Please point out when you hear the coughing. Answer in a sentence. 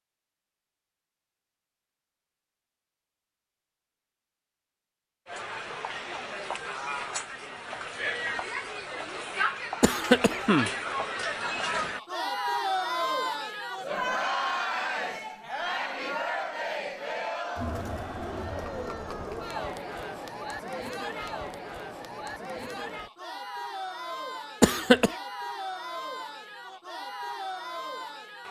The coughing can be heard from 9.8 to 10.7 s and from 24.6 to 25.1 s.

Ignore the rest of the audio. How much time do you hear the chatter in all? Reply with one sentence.
You can hear the chatter for 23 seconds altogether.